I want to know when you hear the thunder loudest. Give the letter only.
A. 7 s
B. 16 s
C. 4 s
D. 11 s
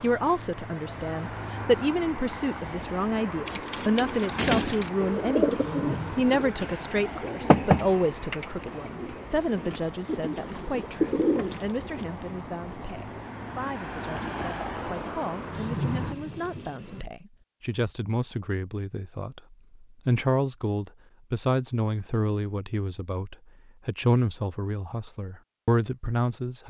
B.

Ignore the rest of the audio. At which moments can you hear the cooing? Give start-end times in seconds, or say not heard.
3.5-12.1.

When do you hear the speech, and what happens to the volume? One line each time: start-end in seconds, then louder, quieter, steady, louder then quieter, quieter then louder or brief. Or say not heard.
0.0-26.6 quieter then louder.